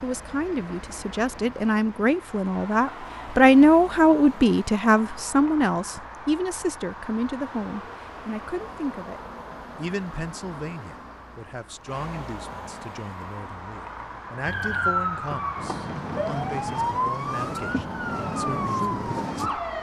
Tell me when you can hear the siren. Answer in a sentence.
You can hear the siren from 14.4 to 19.7 s.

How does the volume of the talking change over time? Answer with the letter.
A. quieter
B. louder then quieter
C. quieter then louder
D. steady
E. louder
A.